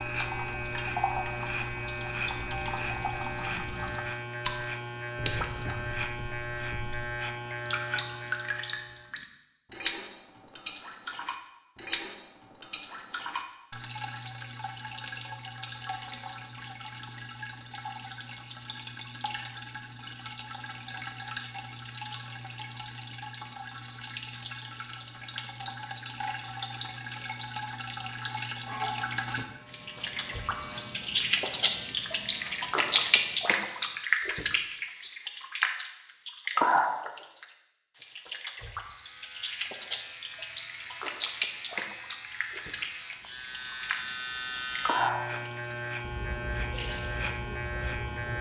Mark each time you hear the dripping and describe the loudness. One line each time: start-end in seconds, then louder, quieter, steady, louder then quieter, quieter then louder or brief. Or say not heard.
0.0-48.3 louder then quieter.